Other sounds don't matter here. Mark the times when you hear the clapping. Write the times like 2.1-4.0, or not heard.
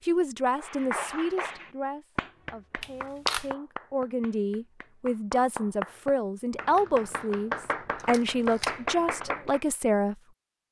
0.6-9.6.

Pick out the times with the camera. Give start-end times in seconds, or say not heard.
2.8-3.5, 8.0-8.8.